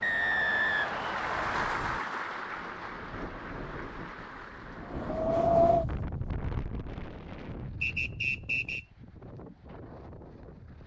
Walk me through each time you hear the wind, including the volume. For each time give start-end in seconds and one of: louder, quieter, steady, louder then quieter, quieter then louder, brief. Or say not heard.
0.0-10.8 louder then quieter.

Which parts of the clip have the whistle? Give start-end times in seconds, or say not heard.
0.0-1.8, 7.8-8.8.